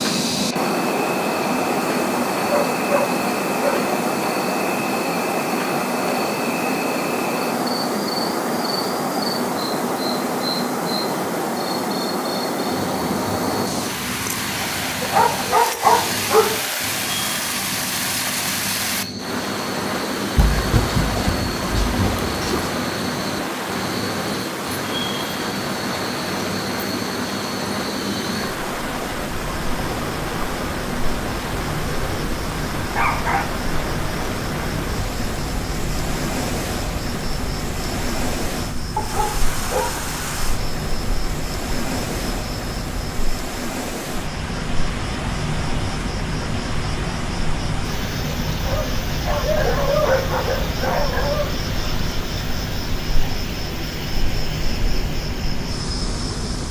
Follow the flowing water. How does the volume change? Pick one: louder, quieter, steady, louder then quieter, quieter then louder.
quieter.